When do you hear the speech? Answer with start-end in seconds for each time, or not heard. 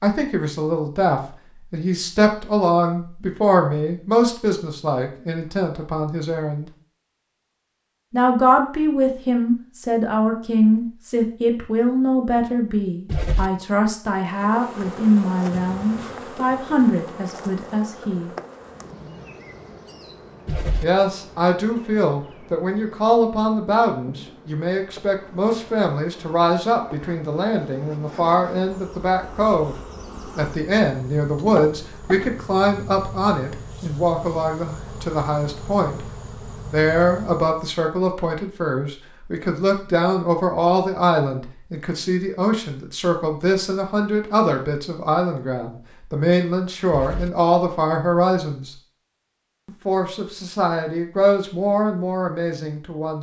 0.0-6.7, 8.1-18.3, 20.8-29.8, 30.4-36.0, 36.6-48.8, 49.6-53.1.